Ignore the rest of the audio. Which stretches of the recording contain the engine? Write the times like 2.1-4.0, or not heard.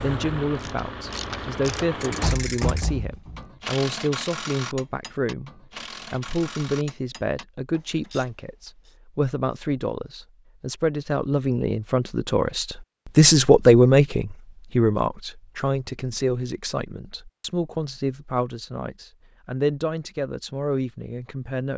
0.0-2.4.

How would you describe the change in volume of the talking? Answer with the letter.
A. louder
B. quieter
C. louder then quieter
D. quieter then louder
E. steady
C.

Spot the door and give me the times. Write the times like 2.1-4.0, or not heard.
2.2-3.5.